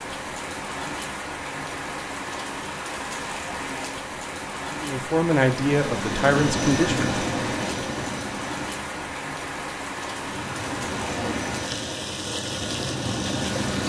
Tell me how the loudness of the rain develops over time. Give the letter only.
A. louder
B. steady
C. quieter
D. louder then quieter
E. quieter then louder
B.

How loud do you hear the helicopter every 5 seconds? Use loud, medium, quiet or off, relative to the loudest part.
off, loud, loud.